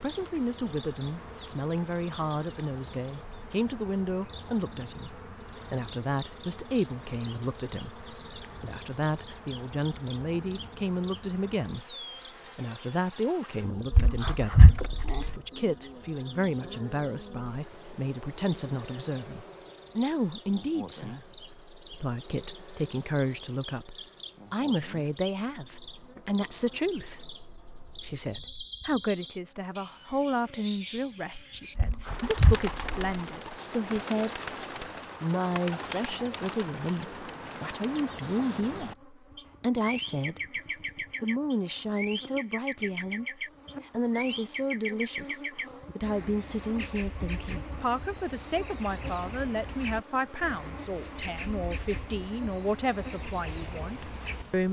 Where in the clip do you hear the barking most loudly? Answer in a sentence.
The loudest moment of the barking is at 15 seconds.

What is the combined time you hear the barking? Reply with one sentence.
You can hear the barking for 3 seconds altogether.